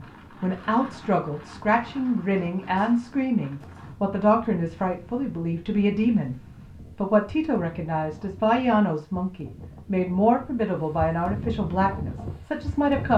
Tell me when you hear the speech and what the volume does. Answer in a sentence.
The speech can be heard from 0.0 to 13.1 s, at a steady volume.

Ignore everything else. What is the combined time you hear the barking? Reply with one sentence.
You can't hear the barking here.